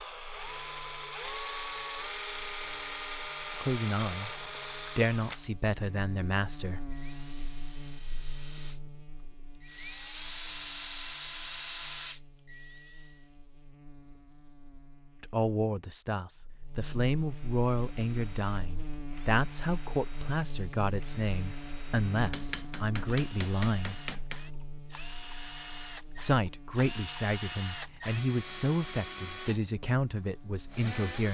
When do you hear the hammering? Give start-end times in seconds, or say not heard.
22.1-24.4.